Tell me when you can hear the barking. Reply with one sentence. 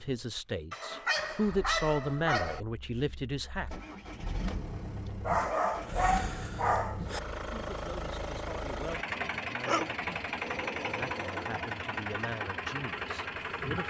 You can hear the barking from 0.7 to 2.6 s, from 5.2 to 7.2 s and from 9.7 to 11.6 s.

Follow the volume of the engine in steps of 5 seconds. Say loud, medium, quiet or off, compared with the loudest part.
medium, loud, loud.